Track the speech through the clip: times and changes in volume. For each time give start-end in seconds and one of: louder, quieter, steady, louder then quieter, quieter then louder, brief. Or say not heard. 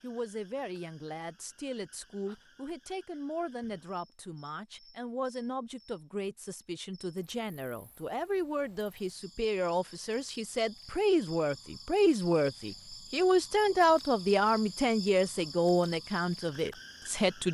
0.0-17.4 louder.